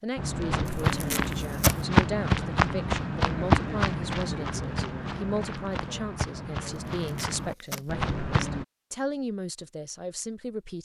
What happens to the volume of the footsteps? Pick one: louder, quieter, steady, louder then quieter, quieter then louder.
quieter.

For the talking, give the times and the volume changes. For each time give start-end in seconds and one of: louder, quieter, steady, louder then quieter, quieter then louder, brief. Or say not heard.
0.0-10.8 steady.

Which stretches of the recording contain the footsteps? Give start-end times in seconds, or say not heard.
0.1-8.7.